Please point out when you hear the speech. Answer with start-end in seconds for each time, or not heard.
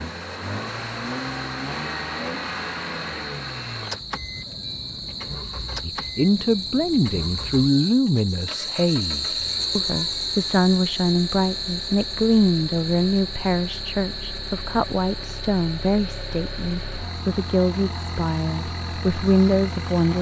5.8-20.1.